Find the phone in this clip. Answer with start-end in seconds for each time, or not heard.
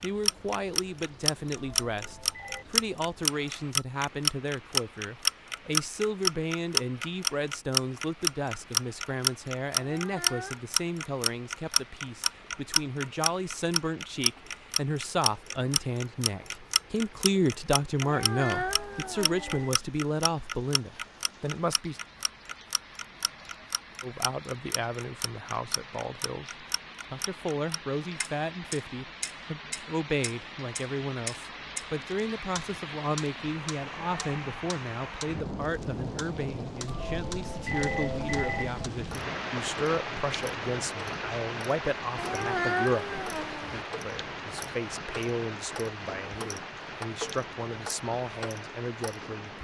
1.6-2.6, 18.6-19.8, 36.9-38.9.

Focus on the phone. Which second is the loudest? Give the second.
38 s.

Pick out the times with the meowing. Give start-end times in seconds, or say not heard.
9.8-10.6, 18.0-19.6, 42.1-43.9.